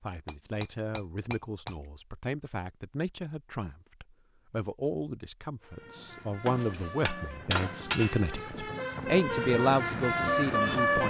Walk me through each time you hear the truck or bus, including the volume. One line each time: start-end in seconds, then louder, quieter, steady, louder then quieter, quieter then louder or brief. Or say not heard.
5.6-11.0 louder.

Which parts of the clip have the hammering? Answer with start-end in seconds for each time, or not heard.
0.2-1.8, 6.5-8.3.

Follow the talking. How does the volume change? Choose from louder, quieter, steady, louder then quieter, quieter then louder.
louder.